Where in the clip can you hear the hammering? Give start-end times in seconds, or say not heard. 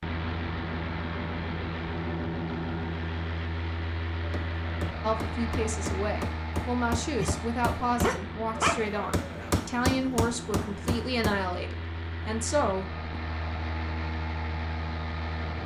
4.2-11.4.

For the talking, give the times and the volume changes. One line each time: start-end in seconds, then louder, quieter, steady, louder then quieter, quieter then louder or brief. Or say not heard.
5.0-12.9 steady.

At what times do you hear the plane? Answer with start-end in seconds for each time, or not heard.
0.0-15.6.